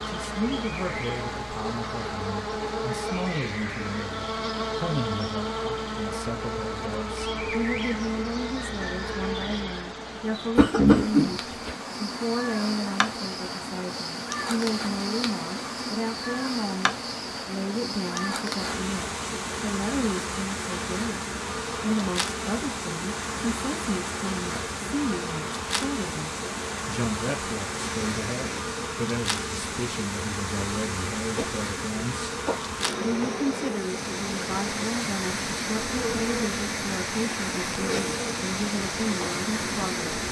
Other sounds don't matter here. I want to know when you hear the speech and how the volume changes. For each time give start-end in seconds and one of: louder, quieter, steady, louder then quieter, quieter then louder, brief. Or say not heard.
0.0-32.4 steady
33.0-40.1 steady.